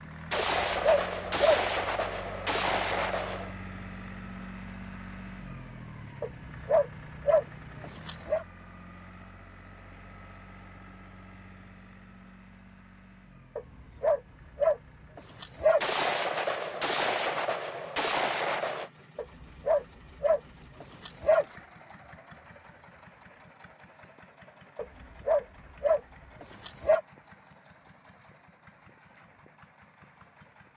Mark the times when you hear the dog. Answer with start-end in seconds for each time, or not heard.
0.3-1.6, 6.2-8.4, 13.6-15.8, 19.1-21.4, 24.8-27.0.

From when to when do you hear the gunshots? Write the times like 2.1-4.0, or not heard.
0.3-3.5, 15.8-18.9.